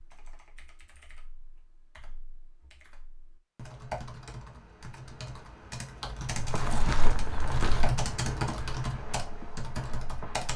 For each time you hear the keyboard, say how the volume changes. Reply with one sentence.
You can hear the keyboard from 0.0 to 10.5 s, getting louder.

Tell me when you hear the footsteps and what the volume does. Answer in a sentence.
You can hear the footsteps from 6.3 to 10.5 s, getting quieter.